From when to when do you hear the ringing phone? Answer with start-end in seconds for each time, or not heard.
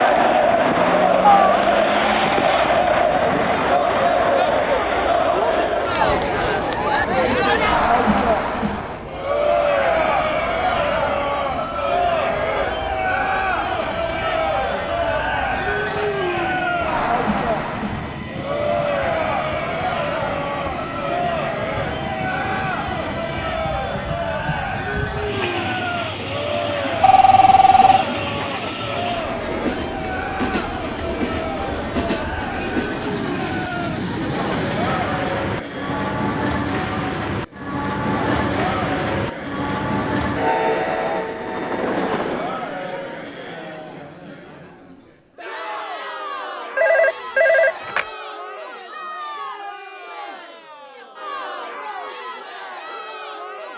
1.2-2.9, 27.0-28.1, 46.8-48.0.